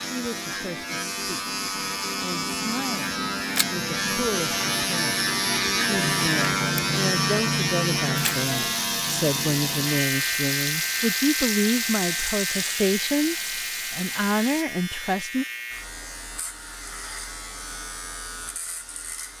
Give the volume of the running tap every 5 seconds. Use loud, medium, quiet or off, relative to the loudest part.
off, loud, loud, off.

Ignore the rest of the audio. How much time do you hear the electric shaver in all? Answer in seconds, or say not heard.
19 s.